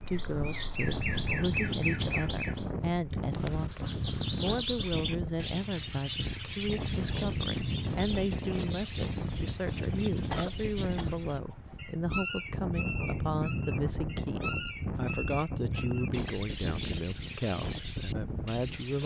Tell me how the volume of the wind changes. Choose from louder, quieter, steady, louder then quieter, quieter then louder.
steady.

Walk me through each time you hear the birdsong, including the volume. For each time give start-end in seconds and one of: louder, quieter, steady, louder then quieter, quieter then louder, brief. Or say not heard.
0.0-19.0 quieter.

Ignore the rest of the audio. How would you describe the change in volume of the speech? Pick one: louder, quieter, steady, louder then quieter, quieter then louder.
steady.